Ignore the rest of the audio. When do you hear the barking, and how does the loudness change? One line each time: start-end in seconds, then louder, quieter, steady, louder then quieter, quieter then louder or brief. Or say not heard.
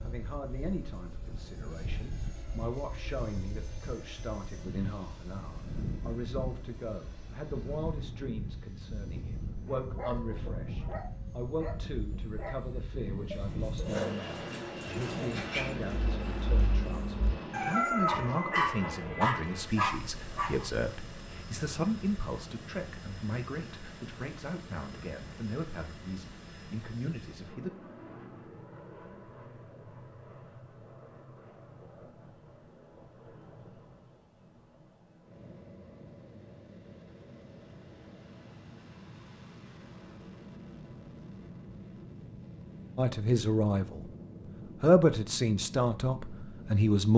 9.7-20.6 louder.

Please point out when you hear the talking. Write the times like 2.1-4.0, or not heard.
0.0-27.8, 43.0-44.0, 44.8-47.1.